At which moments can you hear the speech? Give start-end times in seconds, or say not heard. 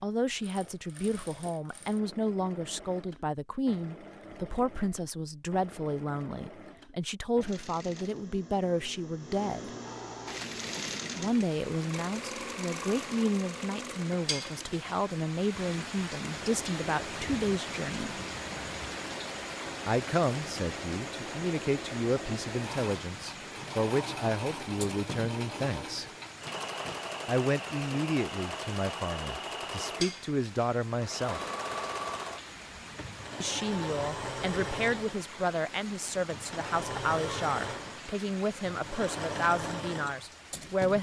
0.0-9.7, 11.2-18.1, 19.9-26.1, 27.2-31.4, 33.4-40.9.